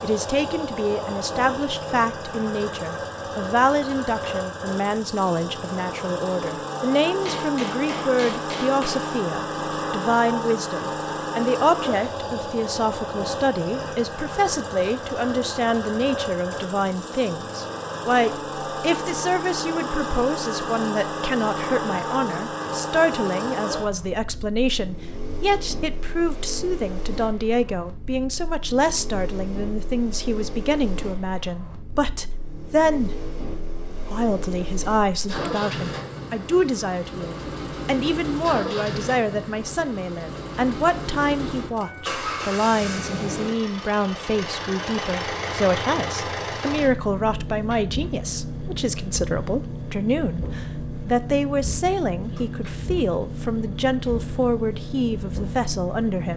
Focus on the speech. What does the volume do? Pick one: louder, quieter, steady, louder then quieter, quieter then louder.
steady.